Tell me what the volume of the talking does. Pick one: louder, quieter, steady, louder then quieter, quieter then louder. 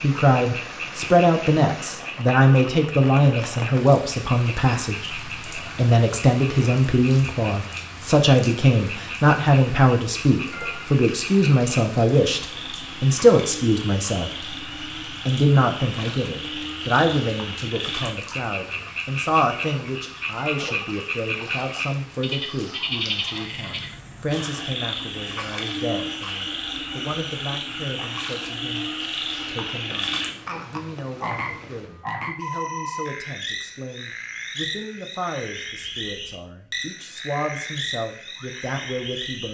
quieter.